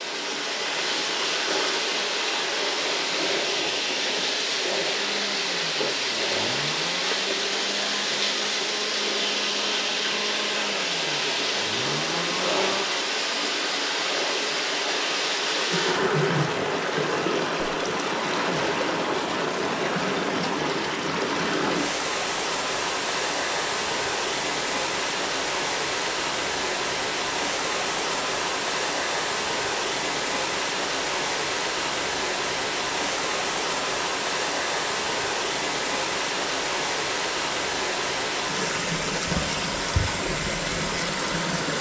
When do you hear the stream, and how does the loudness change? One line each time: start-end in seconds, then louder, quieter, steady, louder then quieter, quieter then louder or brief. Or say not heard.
0.0-41.7 steady.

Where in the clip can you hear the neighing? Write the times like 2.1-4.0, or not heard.
15.7-16.5.